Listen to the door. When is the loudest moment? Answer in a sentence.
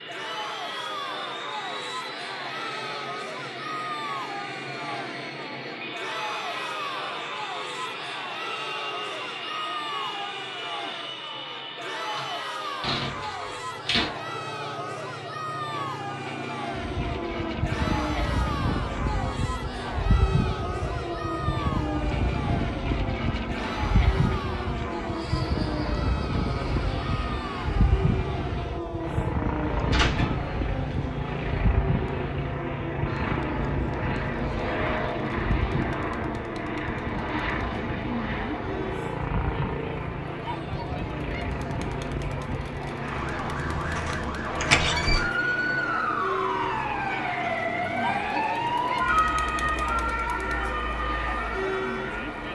The volume of the door peaks at 45 seconds.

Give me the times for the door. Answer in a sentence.
The door can be heard from 12.2 to 14.1 s, from 29.9 to 31.6 s and from 44.6 to 45.3 s.